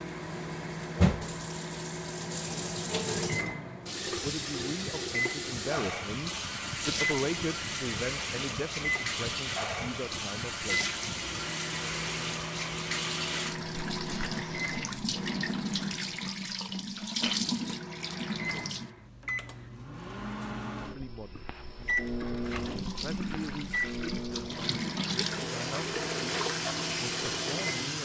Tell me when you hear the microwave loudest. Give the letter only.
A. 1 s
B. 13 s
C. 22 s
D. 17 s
C.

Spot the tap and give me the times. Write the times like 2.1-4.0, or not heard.
0.0-18.9, 22.4-28.0.